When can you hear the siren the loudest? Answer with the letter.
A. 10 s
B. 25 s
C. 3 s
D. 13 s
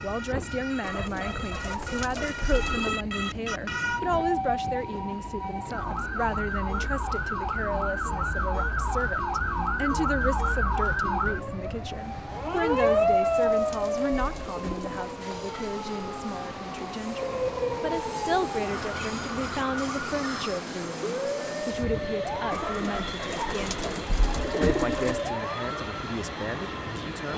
D.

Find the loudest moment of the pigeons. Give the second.
25 s.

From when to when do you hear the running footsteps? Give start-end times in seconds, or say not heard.
not heard.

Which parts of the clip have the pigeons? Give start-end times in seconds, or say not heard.
0.8-3.0, 12.7-15.2, 22.5-25.2.